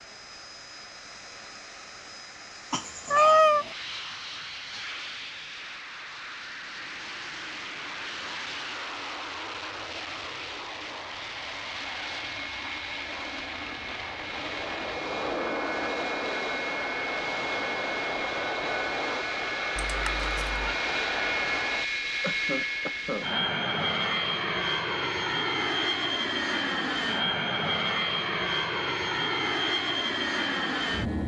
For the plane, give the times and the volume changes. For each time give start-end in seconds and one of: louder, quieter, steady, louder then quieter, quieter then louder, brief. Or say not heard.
0.0-31.2 louder.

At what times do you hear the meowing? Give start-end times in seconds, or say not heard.
3.1-3.7, 19.8-20.7.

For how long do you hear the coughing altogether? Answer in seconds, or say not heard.
2 s.